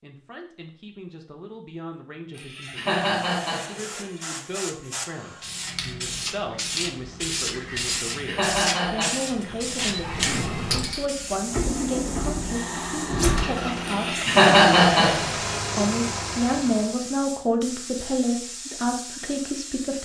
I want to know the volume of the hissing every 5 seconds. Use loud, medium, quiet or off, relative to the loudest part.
medium, loud, loud, medium.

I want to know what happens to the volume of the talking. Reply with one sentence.
The loudness of the talking goes up.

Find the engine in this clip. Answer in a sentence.
You can hear the engine from 9.3 to 16.9 s.